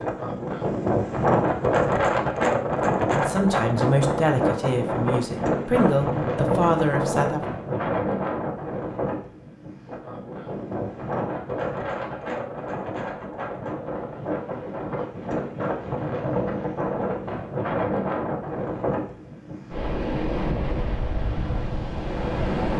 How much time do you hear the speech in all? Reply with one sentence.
You can hear the speech for 4 seconds altogether.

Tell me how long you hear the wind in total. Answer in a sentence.
You can hear the wind for 23 seconds altogether.